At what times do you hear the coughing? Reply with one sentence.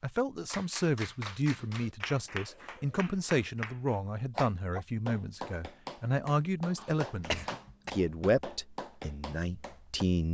The coughing can be heard from 6.8 to 8.0 s.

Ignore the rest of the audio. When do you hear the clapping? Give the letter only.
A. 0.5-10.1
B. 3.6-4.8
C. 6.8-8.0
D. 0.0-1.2
A.